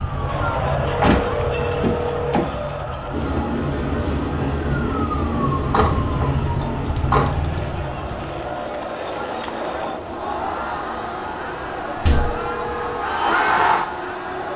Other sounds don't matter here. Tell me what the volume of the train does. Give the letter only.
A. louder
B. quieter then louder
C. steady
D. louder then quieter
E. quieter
E.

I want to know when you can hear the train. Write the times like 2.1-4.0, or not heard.
3.1-14.5.